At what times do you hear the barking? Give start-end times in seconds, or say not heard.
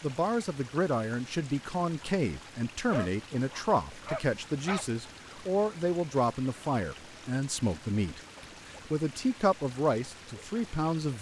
2.5-4.8.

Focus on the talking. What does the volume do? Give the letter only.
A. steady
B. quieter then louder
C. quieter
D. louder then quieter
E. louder
A.